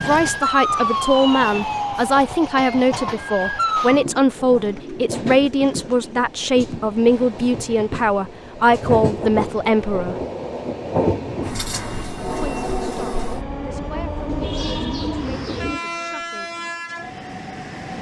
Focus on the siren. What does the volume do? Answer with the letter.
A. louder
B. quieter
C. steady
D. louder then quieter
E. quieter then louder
E.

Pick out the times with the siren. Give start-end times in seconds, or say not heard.
0.0-4.0.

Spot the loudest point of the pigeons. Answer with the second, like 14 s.
15 s.